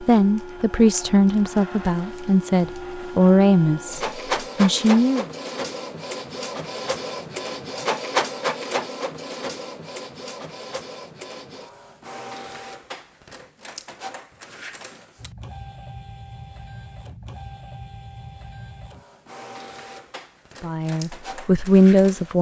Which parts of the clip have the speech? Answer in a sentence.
You can hear the speech from 0.0 to 5.2 s and from 20.6 to 22.3 s.